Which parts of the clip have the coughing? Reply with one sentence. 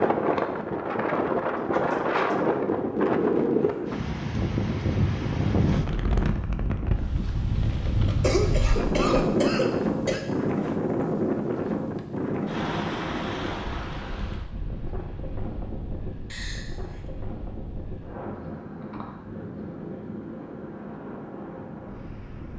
You can hear the coughing from 1.6 to 2.5 s, from 8.1 to 10.2 s and from 16.3 to 17.1 s.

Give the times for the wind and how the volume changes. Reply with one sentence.
The wind can be heard from 0.0 to 22.5 s, getting quieter.